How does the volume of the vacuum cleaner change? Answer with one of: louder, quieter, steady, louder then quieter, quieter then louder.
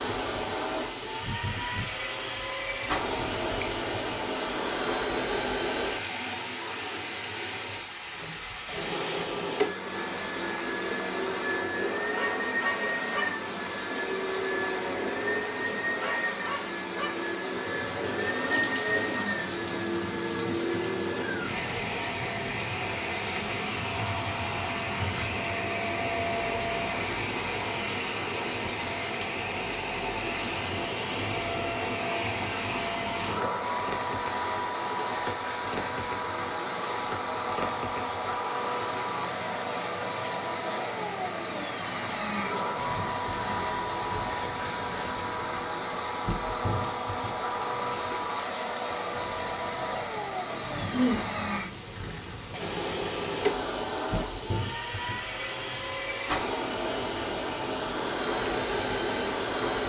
steady.